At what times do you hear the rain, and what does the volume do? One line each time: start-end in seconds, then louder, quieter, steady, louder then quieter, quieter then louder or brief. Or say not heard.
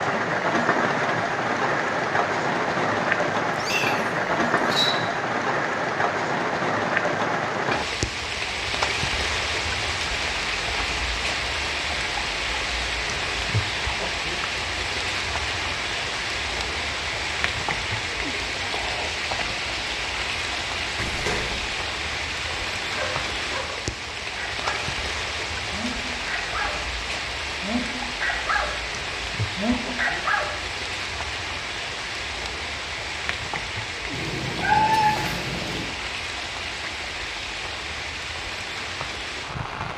0.0-39.9 quieter.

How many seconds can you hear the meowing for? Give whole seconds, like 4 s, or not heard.
4 s.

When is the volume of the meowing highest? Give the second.
35 s.